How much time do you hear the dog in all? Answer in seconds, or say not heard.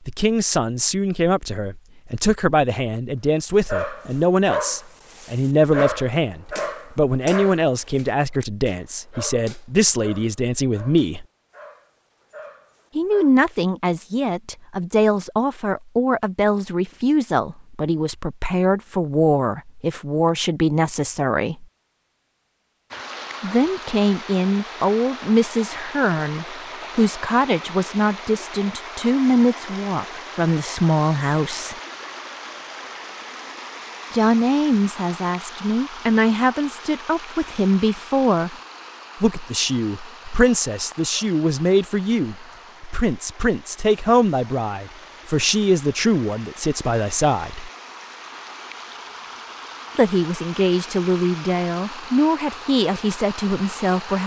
10 s.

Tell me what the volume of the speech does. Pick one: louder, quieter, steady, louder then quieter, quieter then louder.
steady.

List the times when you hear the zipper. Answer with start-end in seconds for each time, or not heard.
not heard.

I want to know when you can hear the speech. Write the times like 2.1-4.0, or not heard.
0.1-11.2, 12.9-21.6, 23.4-31.8, 34.1-38.5, 39.2-47.7, 50.0-54.2.